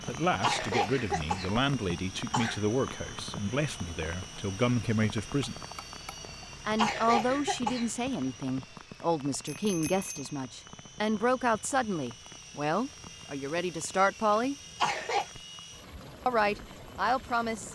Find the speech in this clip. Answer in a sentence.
The speech can be heard from 0.1 to 5.6 s, from 6.7 to 14.6 s and from 16.2 to 17.7 s.